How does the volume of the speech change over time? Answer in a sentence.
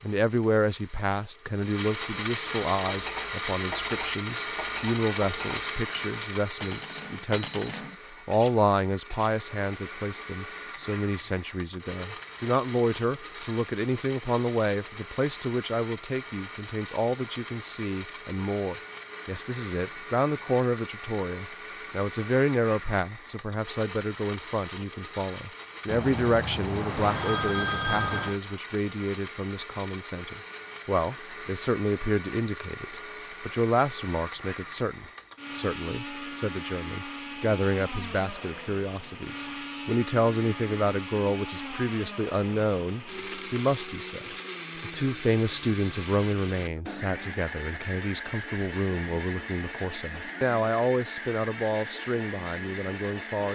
The loudness of the speech stays about the same.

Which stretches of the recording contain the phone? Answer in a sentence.
You can hear the phone from 25.9 to 28.4 s.